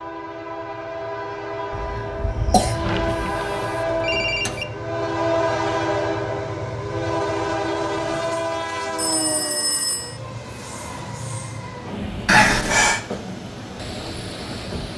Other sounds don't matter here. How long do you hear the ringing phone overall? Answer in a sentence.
The ringing phone can be heard for 3 seconds in total.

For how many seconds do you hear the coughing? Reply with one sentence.
You can hear the coughing for 2 seconds altogether.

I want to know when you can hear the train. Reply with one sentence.
You can hear the train from 0.0 to 14.9 s.